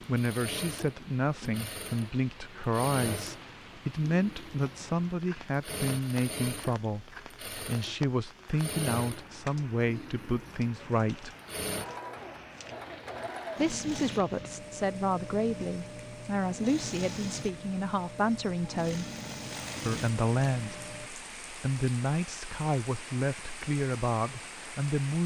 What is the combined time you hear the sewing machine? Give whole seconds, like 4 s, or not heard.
21 s.